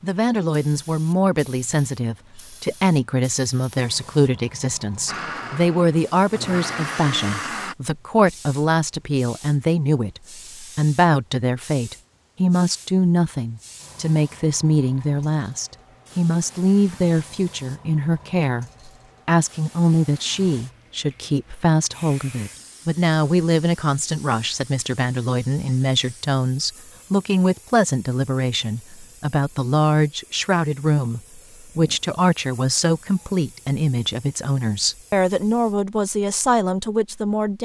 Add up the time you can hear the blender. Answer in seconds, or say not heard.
3 s.